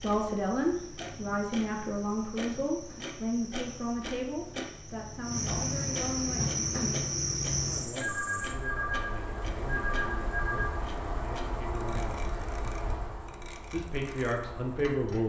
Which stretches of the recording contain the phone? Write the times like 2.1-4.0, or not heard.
8.0-10.8.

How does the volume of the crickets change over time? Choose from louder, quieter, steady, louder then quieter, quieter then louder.
louder then quieter.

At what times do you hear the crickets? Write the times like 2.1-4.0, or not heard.
0.0-15.2.